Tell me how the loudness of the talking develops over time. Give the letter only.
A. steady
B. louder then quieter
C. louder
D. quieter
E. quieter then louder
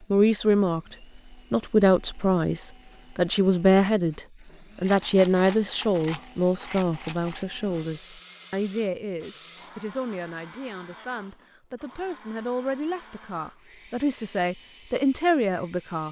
E.